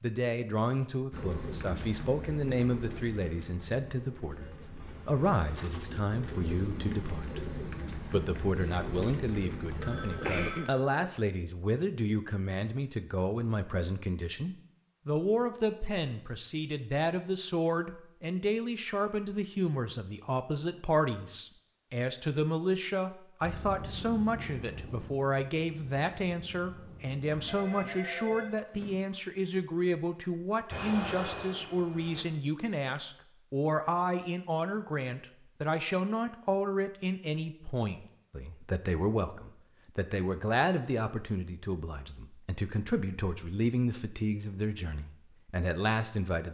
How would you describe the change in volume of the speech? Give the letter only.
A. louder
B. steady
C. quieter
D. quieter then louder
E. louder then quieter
B.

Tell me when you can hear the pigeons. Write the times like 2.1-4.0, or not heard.
1.1-10.6.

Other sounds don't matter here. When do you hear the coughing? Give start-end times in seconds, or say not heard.
10.2-11.2.